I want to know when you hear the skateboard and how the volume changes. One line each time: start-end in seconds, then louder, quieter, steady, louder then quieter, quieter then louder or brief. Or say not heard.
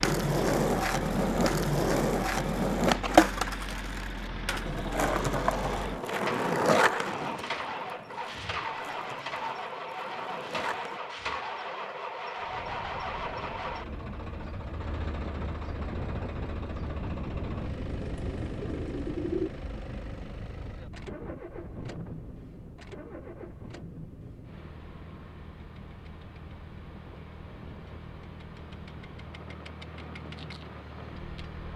0.0-11.0 quieter.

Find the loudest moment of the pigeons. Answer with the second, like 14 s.
19 s.